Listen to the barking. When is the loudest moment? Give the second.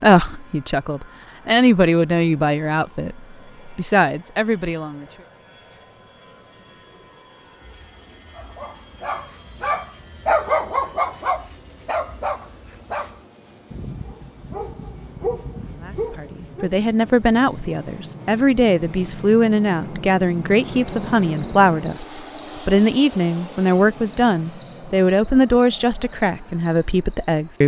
10 s.